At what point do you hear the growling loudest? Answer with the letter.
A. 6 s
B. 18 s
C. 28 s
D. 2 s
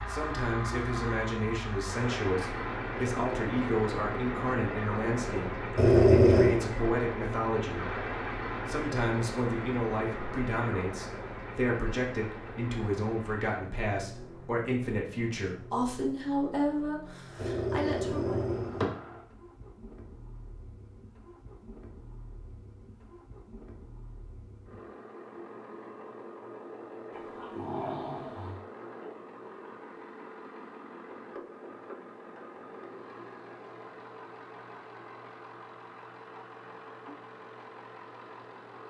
A.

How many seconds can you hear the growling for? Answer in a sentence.
The growling can be heard for 4 seconds in total.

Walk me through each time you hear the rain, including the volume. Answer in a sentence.
The rain can't be heard in this clip.